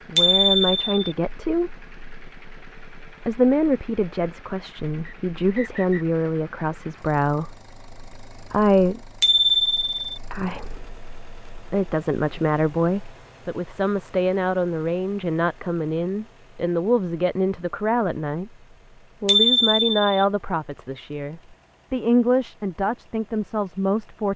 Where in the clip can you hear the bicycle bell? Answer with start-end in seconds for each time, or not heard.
0.1-1.1, 9.2-9.9, 19.2-20.1.